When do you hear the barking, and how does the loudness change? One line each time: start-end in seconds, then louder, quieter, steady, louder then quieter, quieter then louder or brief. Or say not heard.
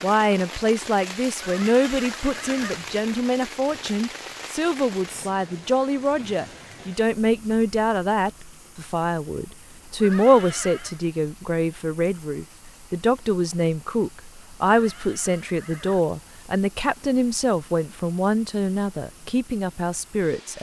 not heard.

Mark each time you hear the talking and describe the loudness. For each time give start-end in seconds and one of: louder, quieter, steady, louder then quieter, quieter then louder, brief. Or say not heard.
0.0-20.5 steady.